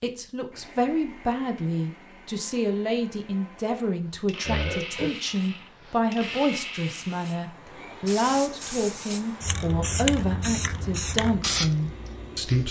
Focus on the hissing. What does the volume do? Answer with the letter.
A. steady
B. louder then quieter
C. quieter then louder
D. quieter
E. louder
E.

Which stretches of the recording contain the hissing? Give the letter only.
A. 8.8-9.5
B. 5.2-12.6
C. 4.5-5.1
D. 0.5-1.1
B.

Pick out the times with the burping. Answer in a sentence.
You can hear the burping from 4.5 to 5.1 s.